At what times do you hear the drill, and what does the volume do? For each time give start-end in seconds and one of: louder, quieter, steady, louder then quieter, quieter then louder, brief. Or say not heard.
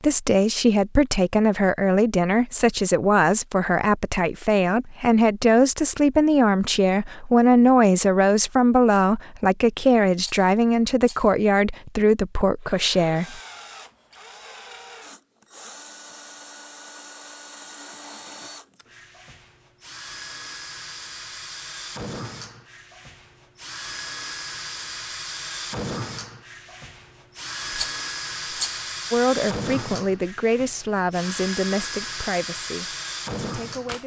12.6-34.0 louder.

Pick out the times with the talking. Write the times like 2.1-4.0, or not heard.
0.0-13.4, 29.1-34.0.